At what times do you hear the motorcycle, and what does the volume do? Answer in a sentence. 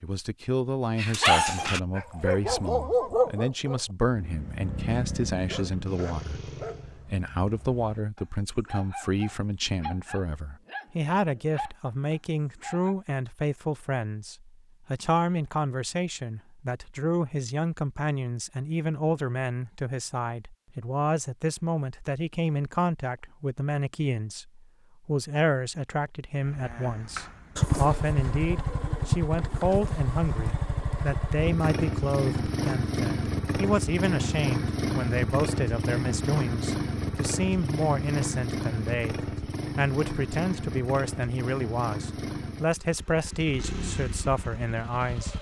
The motorcycle can be heard briefly from 4.2 to 7.0 s; and from 26.4 to 45.3 s, getting quieter.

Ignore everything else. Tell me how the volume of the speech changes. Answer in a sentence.
The loudness of the speech stays about the same.